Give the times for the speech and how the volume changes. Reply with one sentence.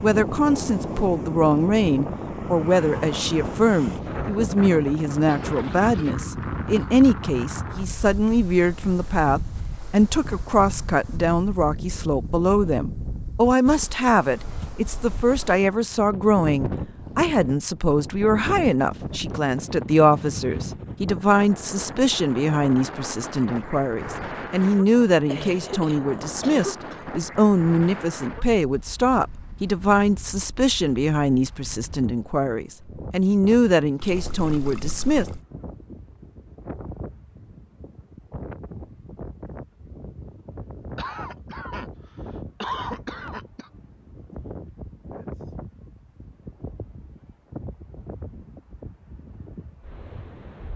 The speech can be heard from 0.0 to 35.2 s, at a steady volume.